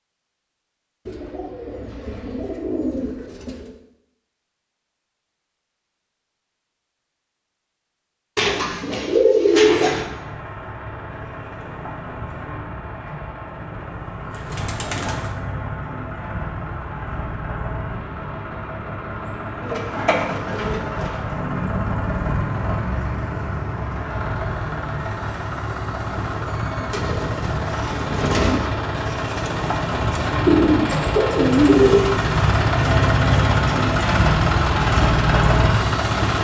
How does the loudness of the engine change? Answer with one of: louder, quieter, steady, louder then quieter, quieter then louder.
louder.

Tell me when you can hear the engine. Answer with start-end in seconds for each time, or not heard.
9.4-36.4.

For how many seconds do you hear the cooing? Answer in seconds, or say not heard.
10 s.